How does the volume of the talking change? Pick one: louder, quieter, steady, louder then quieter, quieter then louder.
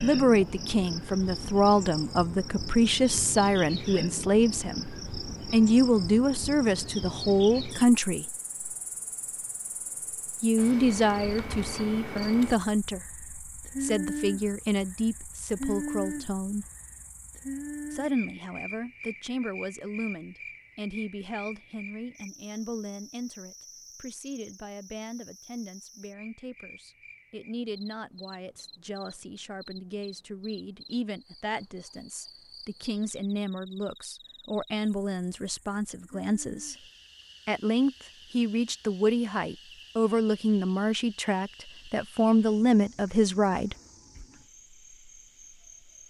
quieter then louder.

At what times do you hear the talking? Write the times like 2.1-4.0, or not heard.
0.0-8.2, 10.4-16.6, 17.9-36.8, 37.5-43.8.